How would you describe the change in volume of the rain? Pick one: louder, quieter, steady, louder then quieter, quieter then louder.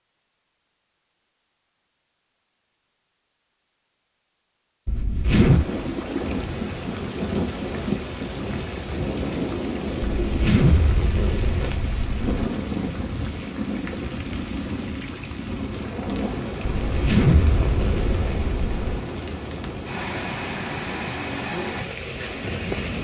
steady.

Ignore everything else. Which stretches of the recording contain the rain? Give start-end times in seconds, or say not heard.
5.3-22.9.